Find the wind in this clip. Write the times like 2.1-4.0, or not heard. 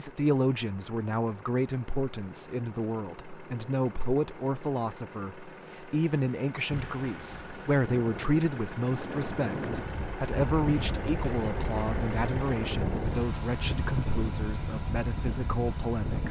6.7-16.2.